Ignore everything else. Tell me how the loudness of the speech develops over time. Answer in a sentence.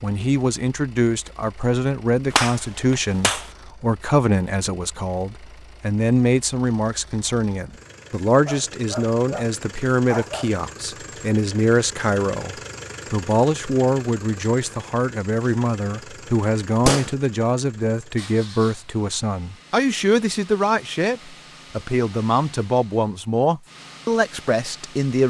The volume of the speech stays about the same.